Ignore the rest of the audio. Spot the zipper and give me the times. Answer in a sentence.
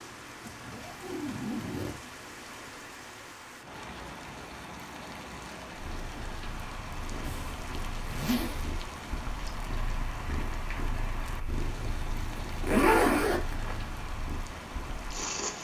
You can hear the zipper from 0.4 to 2.0 s, from 7.2 to 8.7 s and from 12.3 to 13.8 s.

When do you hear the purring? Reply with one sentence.
The purring can be heard from 5.7 to 15.5 s.